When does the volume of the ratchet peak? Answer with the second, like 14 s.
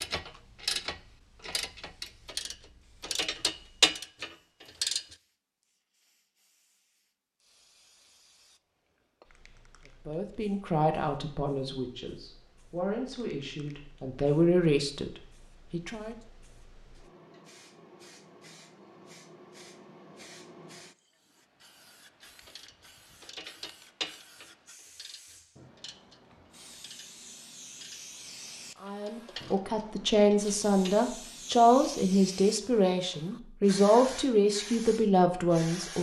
4 s.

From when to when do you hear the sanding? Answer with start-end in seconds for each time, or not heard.
not heard.